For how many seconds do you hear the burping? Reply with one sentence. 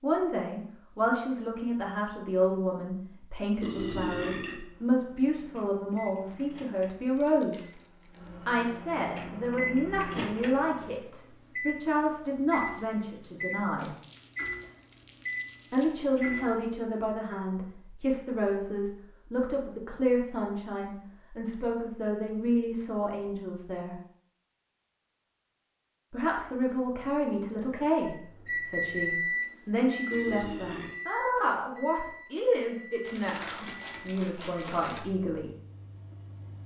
The burping can be heard for 2 seconds in total.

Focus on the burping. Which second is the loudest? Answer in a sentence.
The volume of the burping peaks at 4 seconds.